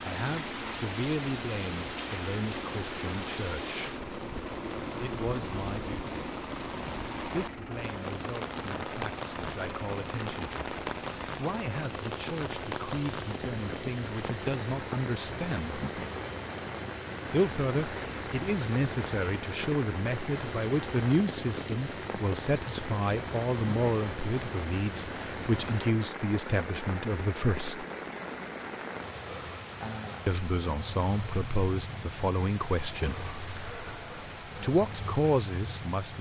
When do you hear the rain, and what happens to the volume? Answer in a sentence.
The rain can be heard from 0.0 to 36.1 s, at a steady volume.